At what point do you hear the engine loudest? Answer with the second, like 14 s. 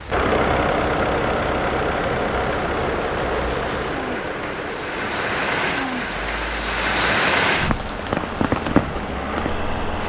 1 s.